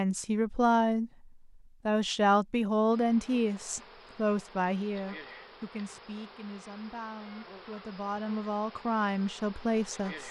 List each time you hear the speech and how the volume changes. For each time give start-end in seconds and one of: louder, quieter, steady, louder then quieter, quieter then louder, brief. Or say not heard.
0.0-10.2 quieter then louder.